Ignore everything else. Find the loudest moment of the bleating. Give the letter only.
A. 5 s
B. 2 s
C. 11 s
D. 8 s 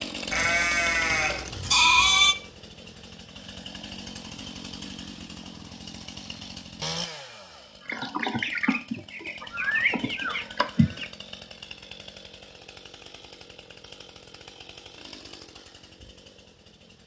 B.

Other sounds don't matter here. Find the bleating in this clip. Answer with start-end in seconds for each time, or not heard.
0.3-2.4, 9.5-11.0.